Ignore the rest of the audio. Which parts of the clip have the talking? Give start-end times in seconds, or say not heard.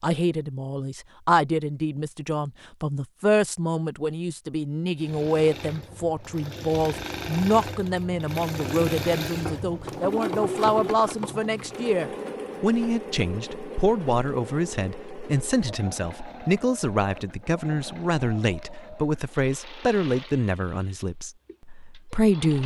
0.0-22.6.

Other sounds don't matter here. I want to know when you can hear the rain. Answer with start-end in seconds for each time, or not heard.
not heard.